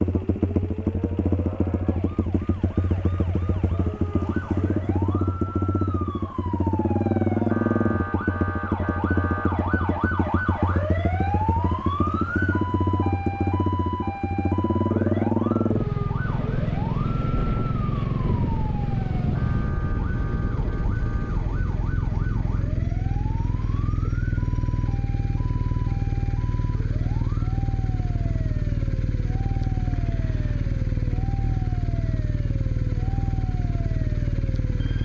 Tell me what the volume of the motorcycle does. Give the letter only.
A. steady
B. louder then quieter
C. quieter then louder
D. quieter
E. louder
A.